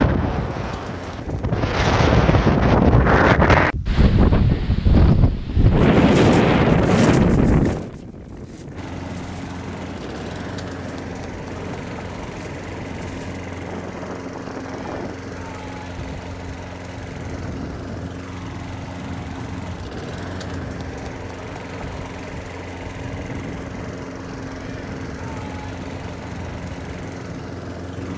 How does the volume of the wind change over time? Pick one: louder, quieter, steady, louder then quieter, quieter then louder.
quieter.